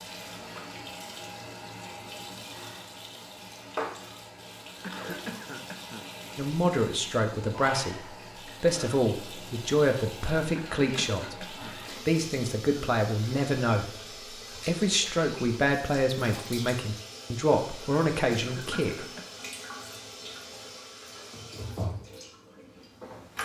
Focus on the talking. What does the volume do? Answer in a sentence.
The volume of the talking stays about the same.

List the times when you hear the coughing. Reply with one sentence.
The coughing can be heard from 4.8 to 6.1 s, from 10.6 to 11.8 s and from 18.4 to 19.4 s.